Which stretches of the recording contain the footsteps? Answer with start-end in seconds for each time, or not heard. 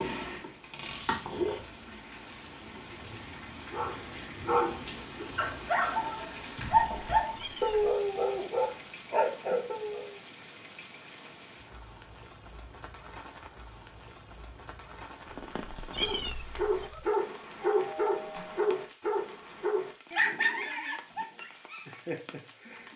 not heard.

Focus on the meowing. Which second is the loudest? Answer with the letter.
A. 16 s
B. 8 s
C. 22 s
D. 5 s
A.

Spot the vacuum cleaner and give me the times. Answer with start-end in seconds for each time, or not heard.
0.0-1.6.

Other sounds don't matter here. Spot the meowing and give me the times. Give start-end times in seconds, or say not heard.
7.3-7.8, 15.9-17.1.